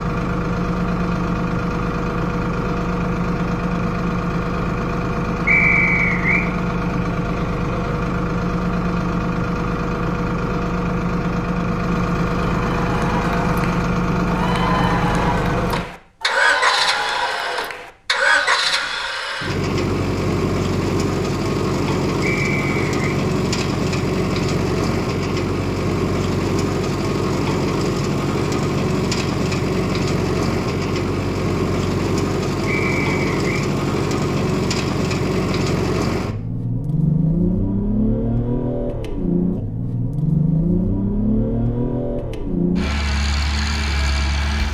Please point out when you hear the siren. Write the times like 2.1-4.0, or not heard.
not heard.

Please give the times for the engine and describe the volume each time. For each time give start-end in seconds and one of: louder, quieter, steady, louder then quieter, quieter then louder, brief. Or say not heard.
0.0-44.7 steady.